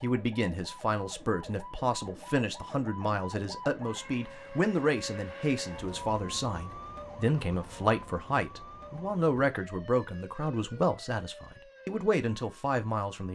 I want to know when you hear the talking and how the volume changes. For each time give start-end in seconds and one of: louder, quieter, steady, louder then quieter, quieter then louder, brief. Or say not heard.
0.0-13.3 steady.